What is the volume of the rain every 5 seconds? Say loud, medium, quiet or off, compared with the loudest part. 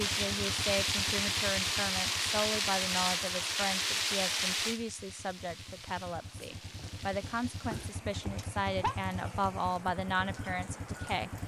loud, quiet, quiet.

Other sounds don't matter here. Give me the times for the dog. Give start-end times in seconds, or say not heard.
6.3-8.9.